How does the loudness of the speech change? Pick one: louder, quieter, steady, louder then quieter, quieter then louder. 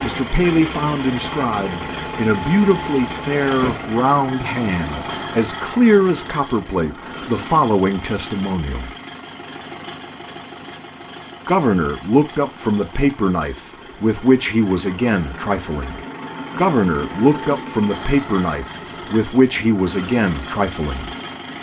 steady.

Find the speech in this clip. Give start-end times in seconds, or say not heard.
0.0-8.9, 11.4-21.1.